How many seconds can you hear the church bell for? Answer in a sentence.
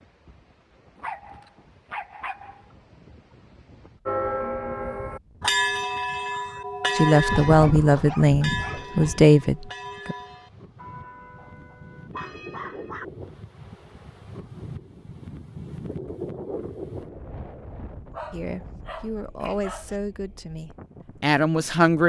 The church bell can be heard for 9 seconds in total.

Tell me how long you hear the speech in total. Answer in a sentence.
You can hear the speech for 7 seconds altogether.